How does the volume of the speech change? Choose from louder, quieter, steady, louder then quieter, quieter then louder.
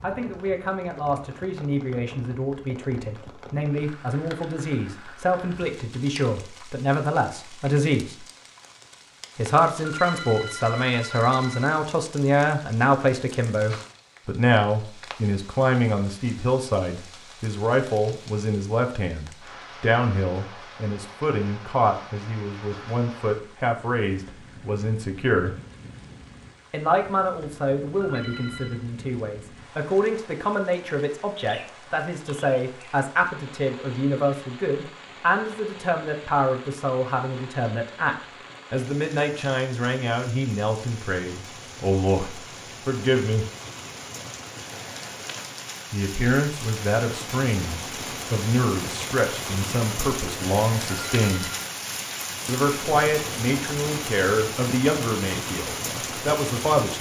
steady.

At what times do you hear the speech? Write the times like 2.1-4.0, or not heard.
0.0-8.2, 9.3-25.6, 26.7-43.5, 45.9-51.5, 52.5-56.9.